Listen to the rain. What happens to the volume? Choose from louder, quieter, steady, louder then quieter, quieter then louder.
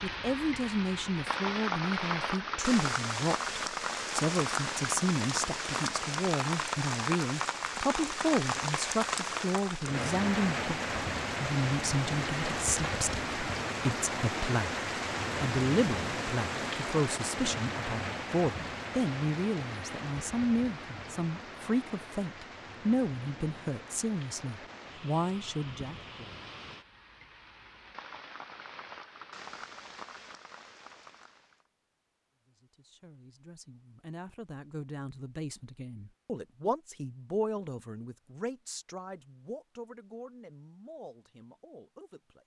quieter.